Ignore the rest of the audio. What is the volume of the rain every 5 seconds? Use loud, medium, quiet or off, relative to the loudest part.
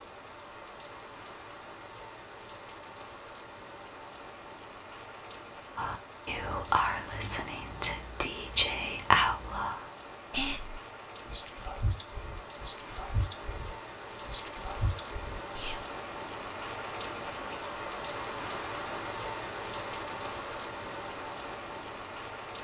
medium, medium, medium, loud, loud.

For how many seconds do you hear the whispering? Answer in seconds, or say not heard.
10 s.